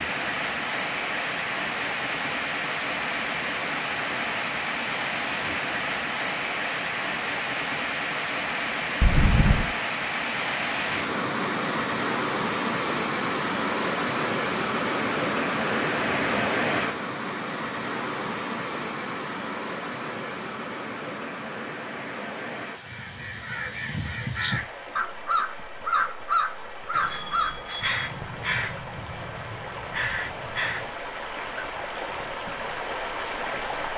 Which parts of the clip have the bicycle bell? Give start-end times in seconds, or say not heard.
9.0-9.7, 15.9-16.7, 26.9-28.1.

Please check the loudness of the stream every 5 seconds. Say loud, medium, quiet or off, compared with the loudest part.
loud, loud, loud, loud, medium, quiet, medium.